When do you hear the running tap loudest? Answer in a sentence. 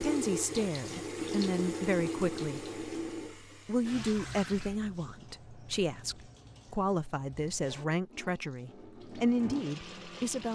The volume of the running tap peaks at 2 seconds.